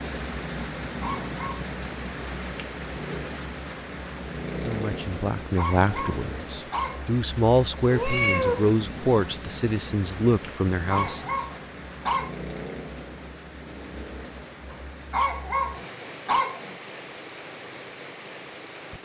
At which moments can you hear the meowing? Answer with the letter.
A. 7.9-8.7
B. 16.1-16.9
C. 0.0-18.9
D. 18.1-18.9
A.